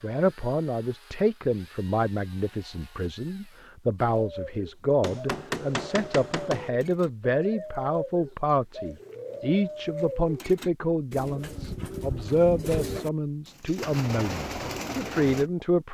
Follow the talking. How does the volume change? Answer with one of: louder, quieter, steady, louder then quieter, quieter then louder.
steady.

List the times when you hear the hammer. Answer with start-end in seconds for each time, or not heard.
5.0-6.7.